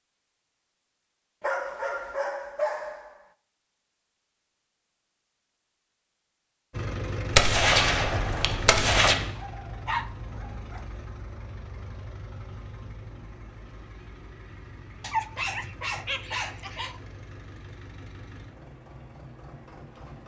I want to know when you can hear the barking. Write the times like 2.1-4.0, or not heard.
1.4-3.2, 9.3-10.8, 15.0-17.0.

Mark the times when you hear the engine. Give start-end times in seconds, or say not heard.
6.7-20.2.